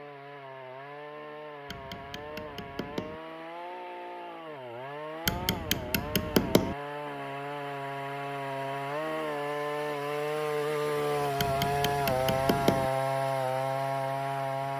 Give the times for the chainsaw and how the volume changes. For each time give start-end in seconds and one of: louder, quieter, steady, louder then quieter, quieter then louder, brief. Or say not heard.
0.0-14.7 louder.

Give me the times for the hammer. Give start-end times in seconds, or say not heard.
1.6-3.2, 5.2-6.8, 11.3-12.9.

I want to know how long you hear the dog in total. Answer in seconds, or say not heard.
not heard.